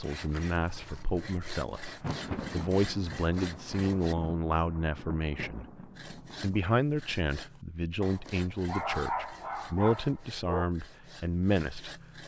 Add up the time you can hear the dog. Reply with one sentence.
The dog can be heard for 3 seconds in total.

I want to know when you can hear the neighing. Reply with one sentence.
You can't hear the neighing here.